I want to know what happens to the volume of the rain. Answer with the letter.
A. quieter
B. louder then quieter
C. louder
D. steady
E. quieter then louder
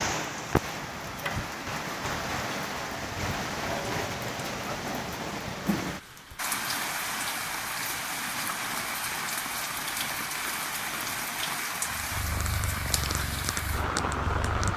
D.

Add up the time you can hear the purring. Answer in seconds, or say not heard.
3 s.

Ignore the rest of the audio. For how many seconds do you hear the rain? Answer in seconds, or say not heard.
15 s.